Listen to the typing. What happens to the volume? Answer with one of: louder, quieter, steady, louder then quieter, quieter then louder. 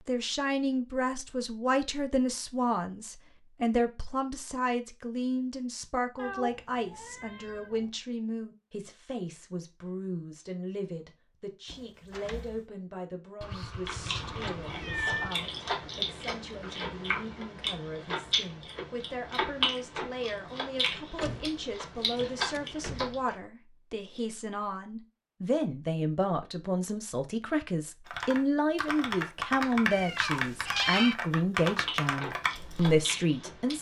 steady.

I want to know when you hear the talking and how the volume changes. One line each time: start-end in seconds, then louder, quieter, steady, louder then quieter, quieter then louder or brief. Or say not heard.
0.1-33.7 quieter then louder.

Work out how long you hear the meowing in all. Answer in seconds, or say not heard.
5 s.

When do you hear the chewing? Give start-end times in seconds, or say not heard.
13.8-23.4, 31.6-33.7.